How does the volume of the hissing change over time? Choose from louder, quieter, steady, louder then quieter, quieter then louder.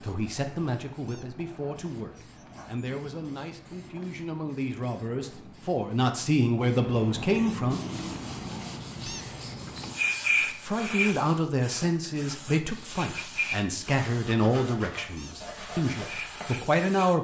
louder then quieter.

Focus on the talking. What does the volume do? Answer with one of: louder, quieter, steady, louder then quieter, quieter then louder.
louder.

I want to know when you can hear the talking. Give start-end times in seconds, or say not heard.
0.0-7.8, 10.4-17.1.